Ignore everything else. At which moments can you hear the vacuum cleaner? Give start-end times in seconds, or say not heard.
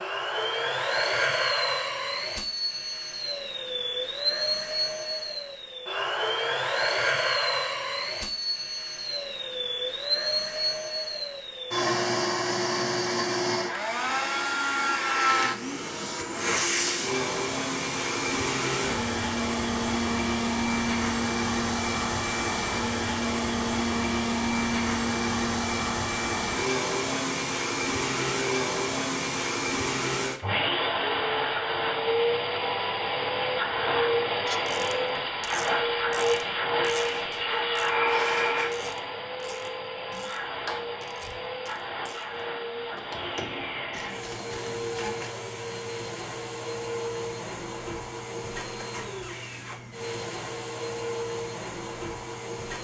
0.0-52.7.